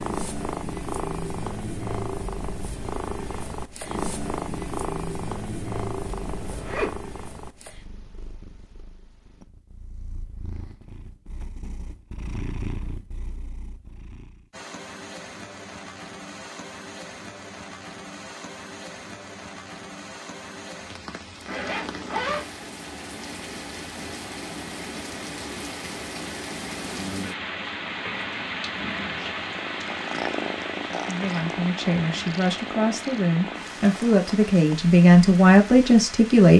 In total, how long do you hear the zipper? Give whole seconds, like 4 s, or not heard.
2 s.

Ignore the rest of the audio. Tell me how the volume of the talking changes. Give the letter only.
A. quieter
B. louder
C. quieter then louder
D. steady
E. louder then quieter
B.